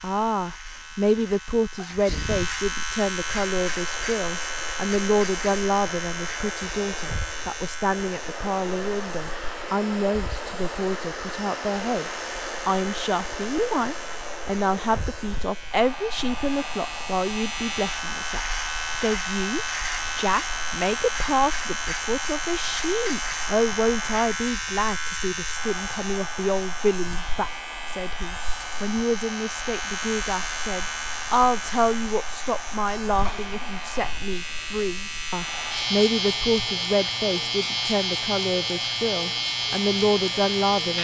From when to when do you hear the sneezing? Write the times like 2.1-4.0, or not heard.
1.8-2.6, 33.2-33.8.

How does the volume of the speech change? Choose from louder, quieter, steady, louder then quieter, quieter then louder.
steady.